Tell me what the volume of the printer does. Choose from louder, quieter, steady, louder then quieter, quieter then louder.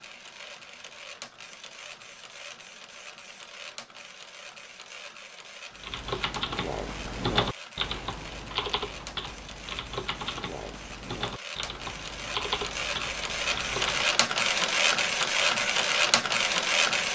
louder.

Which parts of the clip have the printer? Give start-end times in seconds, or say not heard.
0.0-17.1.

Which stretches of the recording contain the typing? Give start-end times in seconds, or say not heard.
5.8-14.2.